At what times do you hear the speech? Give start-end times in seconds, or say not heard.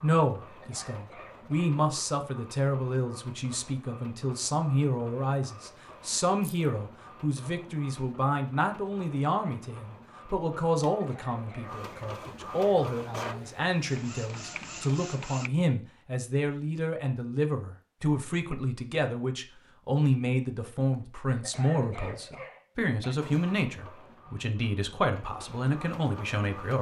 0.0-26.7.